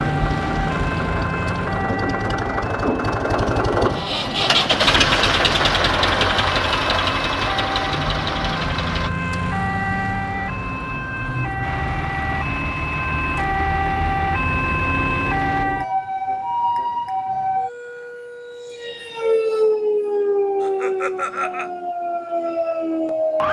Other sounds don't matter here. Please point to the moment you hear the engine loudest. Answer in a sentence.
The volume of the engine peaks at 5 seconds.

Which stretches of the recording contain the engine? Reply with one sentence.
You can hear the engine from 0.0 to 9.1 s and from 11.6 to 15.7 s.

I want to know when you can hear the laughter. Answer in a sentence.
The laughter can be heard from 20.6 to 21.7 s.